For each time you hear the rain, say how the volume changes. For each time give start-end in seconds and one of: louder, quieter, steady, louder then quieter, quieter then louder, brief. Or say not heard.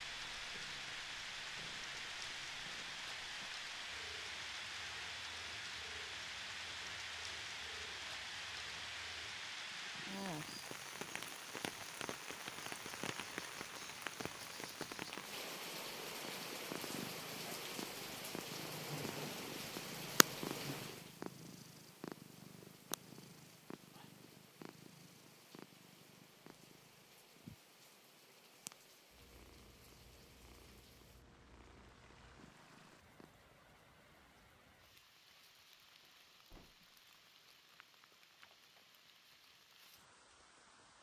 0.0-40.9 quieter.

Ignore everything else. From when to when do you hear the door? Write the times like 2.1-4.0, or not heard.
36.0-37.0.